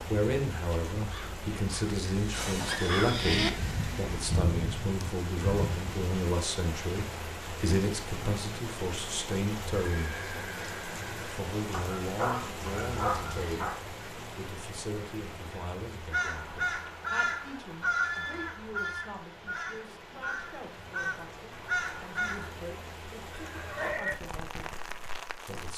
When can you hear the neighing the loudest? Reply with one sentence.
The volume of the neighing peaks at 24 seconds.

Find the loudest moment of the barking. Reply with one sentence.
The volume of the barking peaks at 13 seconds.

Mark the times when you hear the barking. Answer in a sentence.
The barking can be heard from 11.7 to 13.8 s.